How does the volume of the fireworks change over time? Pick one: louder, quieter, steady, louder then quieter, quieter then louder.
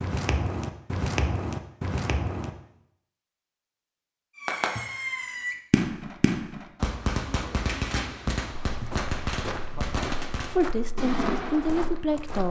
steady.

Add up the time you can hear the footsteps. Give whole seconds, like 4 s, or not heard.
6 s.